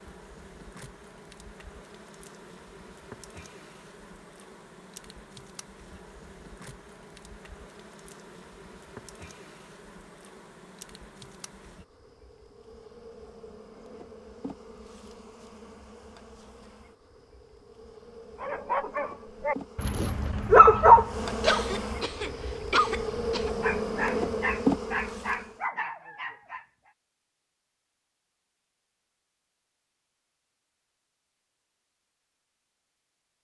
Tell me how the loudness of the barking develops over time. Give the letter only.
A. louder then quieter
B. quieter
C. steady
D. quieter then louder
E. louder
A.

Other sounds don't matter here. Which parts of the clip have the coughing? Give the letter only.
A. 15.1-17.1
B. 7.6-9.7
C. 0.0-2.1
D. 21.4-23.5
D.